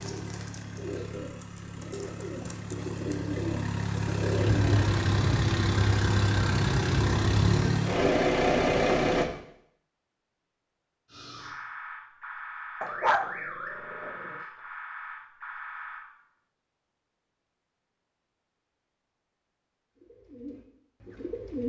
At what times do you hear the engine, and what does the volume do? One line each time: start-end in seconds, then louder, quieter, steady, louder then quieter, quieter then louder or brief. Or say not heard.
0.0-9.2 louder.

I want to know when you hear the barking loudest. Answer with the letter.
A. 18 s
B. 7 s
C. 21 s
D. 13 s
D.